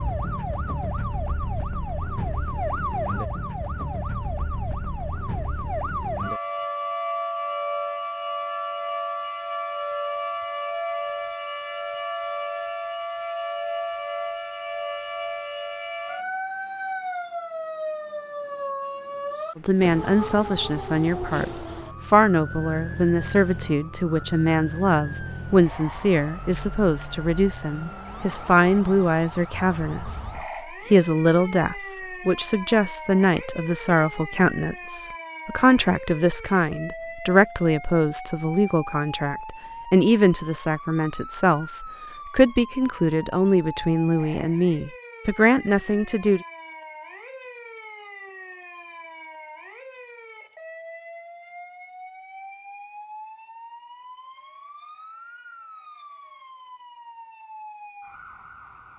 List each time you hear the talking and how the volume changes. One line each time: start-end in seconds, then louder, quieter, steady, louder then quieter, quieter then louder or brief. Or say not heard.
19.6-46.5 steady.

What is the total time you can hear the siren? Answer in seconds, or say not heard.
59 s.